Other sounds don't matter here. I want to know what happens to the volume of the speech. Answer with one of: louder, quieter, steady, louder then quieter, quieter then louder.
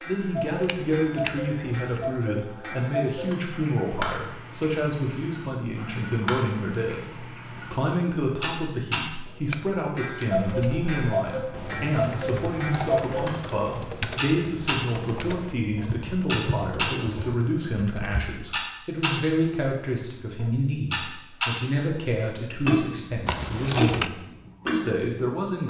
steady.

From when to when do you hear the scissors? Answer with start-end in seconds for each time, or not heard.
0.6-2.1, 9.5-10.5, 23.2-24.1.